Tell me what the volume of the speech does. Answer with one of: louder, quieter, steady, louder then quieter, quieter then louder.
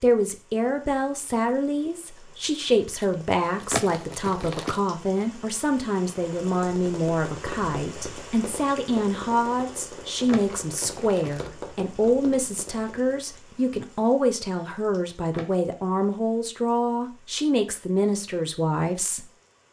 steady.